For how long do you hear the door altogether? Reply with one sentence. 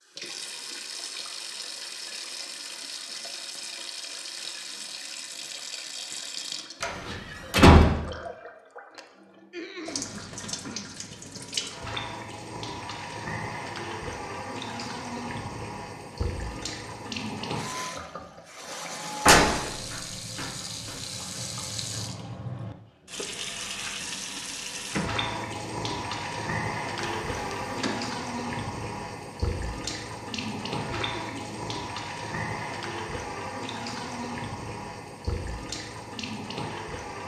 The door can be heard for 3 seconds in total.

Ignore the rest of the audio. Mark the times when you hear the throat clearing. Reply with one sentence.
You can hear the throat clearing from 9.5 to 10.8 s and from 30.9 to 31.6 s.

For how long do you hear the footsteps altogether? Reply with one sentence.
You can't hear the footsteps here.